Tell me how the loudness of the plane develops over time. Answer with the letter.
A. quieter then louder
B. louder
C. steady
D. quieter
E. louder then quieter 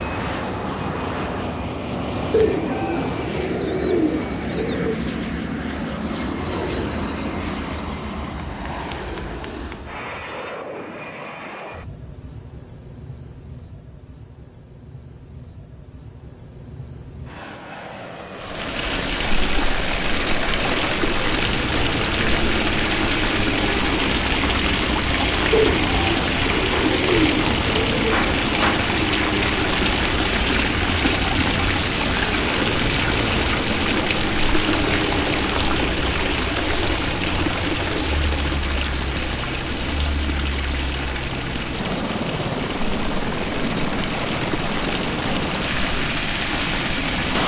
A.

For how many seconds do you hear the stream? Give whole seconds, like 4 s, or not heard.
29 s.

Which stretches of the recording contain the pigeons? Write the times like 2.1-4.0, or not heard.
2.3-5.0, 25.5-27.9.